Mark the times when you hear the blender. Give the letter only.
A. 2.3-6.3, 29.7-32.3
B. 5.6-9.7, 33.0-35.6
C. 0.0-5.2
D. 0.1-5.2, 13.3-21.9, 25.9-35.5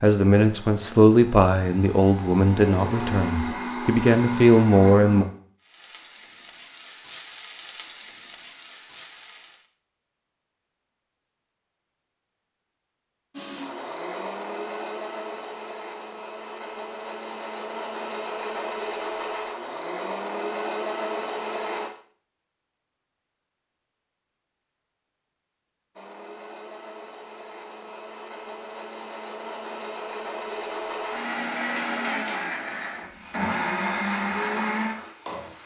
D.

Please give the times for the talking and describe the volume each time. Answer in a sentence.
The talking can be heard from 0.0 to 5.2 s, getting quieter then louder.